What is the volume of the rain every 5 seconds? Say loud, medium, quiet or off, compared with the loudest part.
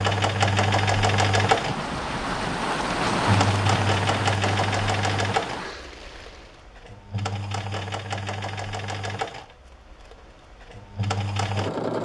loud, medium, off.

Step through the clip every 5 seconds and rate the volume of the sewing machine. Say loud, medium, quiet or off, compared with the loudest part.
loud, medium, medium.